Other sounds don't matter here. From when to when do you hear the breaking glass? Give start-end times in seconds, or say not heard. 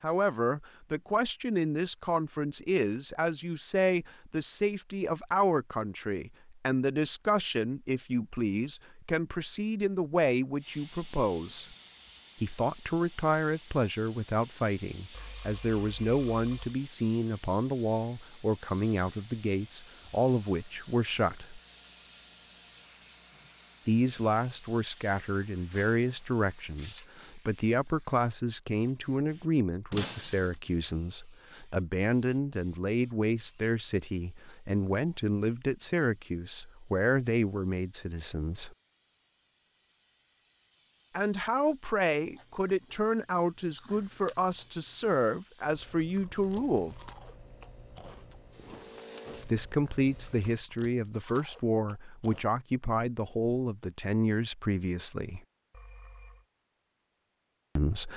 25.7-26.1, 29.9-30.6.